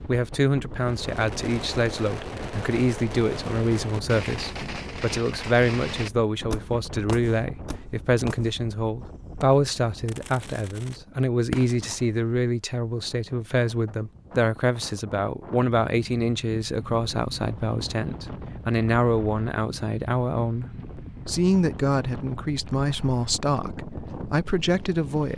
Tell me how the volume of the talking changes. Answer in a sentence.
The loudness of the talking stays about the same.